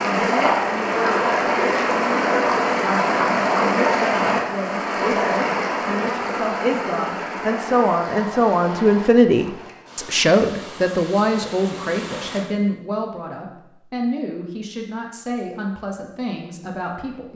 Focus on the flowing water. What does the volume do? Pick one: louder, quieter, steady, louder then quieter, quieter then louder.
quieter.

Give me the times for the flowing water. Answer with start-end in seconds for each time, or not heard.
0.0-12.4.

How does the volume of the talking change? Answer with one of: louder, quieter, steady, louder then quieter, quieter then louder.
louder then quieter.